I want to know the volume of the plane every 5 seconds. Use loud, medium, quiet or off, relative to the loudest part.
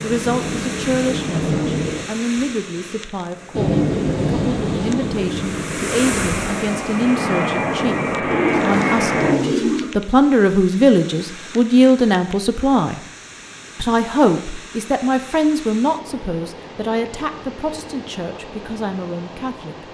loud, loud, off, off.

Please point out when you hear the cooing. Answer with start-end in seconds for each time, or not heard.
8.3-9.9.